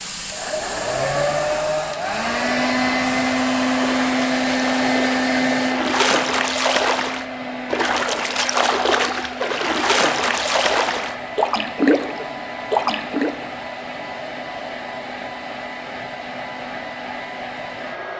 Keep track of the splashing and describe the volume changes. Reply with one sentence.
The volume of the splashing goes up.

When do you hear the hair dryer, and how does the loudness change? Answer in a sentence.
The hair dryer can be heard from 0.0 to 18.1 s, getting quieter.